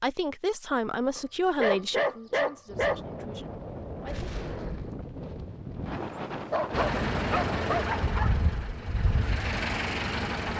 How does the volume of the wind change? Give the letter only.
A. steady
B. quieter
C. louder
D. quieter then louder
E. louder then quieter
A.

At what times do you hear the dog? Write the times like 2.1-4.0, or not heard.
1.1-3.0, 6.5-8.4.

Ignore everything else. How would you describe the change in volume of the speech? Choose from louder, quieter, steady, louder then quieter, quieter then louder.
quieter.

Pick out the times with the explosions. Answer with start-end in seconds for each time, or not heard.
4.0-5.0.